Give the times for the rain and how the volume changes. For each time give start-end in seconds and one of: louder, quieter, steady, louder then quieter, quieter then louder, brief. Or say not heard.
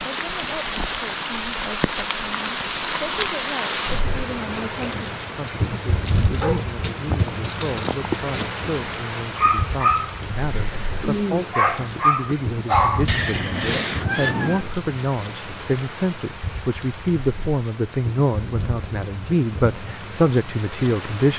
0.0-21.3 quieter.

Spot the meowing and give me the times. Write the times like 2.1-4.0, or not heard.
13.1-14.7.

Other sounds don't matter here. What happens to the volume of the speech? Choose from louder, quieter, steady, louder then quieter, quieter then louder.
louder.